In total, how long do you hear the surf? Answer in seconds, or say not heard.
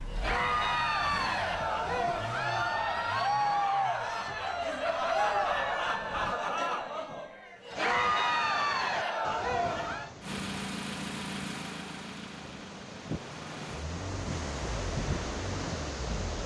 9 s.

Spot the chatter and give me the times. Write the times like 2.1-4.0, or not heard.
0.1-10.1.